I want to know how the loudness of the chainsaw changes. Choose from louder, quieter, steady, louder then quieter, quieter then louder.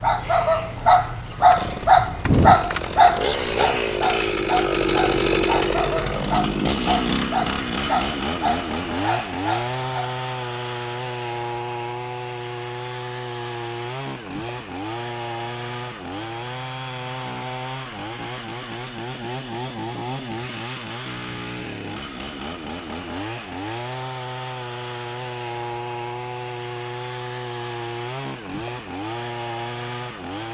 quieter.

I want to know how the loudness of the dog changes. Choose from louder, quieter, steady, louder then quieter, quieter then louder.
quieter.